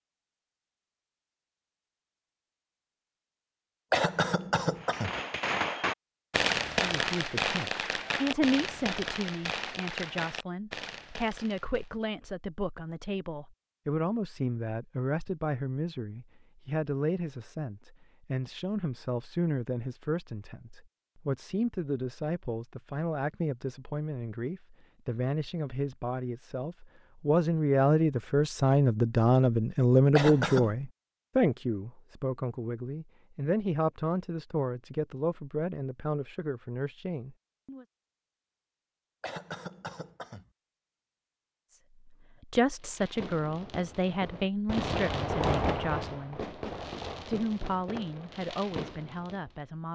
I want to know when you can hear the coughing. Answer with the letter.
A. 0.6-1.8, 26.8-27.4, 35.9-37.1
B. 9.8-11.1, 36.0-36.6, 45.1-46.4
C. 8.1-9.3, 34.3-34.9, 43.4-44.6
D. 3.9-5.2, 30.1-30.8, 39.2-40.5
D.